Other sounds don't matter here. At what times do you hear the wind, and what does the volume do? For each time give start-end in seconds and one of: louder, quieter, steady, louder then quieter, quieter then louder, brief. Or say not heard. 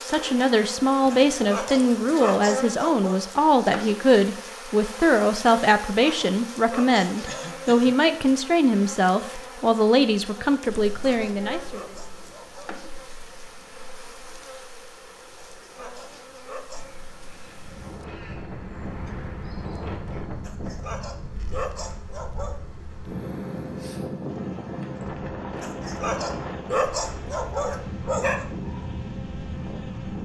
10.7-30.2 louder.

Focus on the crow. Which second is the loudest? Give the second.
19 s.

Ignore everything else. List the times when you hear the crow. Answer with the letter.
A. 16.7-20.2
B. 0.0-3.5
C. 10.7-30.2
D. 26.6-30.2
A.